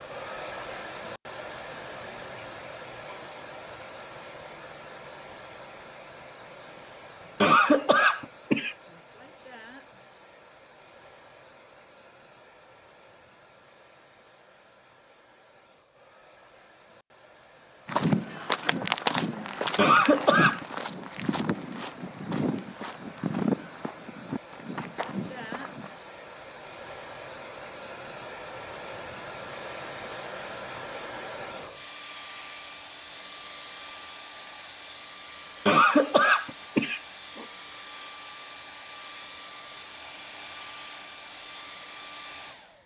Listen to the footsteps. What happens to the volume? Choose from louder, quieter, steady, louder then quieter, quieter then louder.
quieter.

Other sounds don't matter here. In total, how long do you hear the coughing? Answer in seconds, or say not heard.
4 s.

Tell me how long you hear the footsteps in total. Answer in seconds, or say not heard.
8 s.